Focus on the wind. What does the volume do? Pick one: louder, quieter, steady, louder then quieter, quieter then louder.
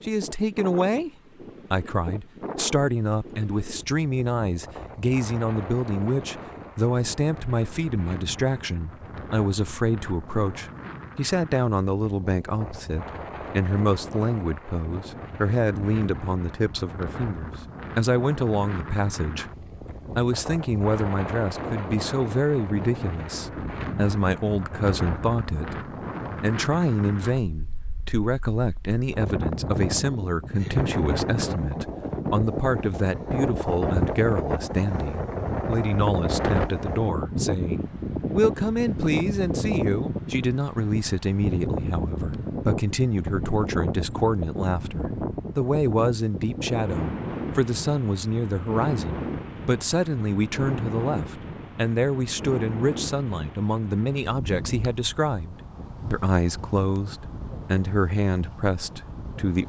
louder then quieter.